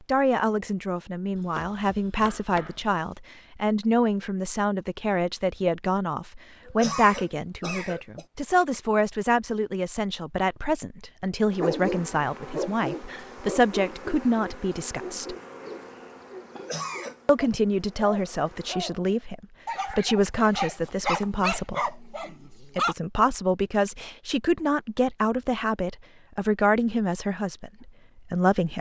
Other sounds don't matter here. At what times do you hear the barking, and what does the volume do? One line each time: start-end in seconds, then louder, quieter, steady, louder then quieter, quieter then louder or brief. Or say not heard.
11.6-22.9 quieter then louder.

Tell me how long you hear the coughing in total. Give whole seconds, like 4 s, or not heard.
2 s.